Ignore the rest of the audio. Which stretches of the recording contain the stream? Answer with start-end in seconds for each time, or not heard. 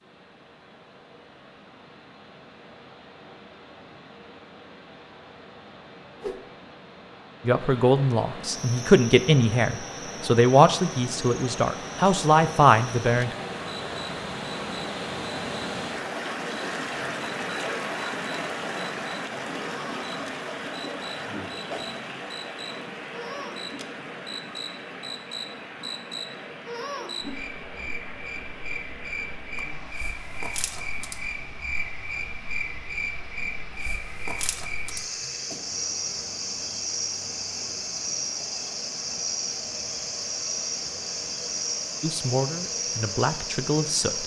0.0-44.2.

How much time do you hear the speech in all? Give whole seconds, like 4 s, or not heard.
8 s.